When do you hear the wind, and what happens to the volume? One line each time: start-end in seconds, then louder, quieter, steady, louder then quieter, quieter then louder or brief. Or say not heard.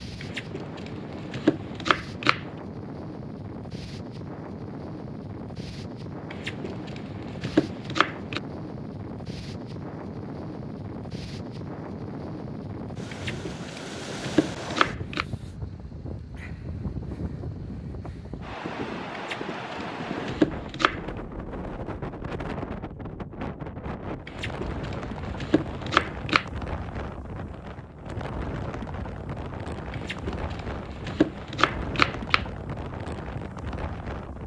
0.0-34.4 steady.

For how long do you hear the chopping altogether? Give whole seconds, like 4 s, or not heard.
13 s.